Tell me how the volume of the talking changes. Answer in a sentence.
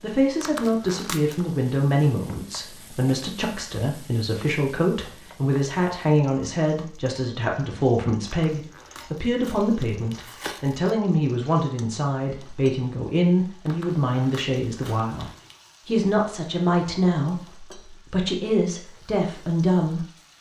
The volume of the talking stays about the same.